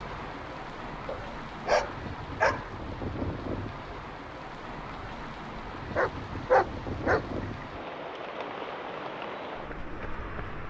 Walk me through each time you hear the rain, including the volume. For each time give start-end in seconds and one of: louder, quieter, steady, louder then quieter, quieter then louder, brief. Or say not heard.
0.0-10.6 steady.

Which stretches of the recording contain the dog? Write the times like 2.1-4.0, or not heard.
1.1-2.7, 6.0-7.7.